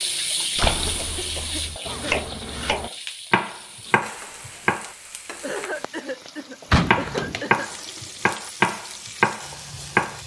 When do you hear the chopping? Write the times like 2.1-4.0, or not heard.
1.9-4.9, 6.8-10.2.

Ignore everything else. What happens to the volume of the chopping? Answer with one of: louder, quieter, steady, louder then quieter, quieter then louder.
louder.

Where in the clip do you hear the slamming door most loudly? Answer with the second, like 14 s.
7 s.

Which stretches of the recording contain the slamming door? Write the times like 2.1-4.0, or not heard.
0.6-1.8, 6.7-7.3.